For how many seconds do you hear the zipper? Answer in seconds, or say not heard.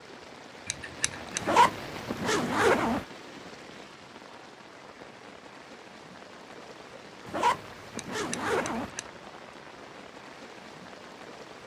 3 s.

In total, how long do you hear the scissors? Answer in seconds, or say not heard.
2 s.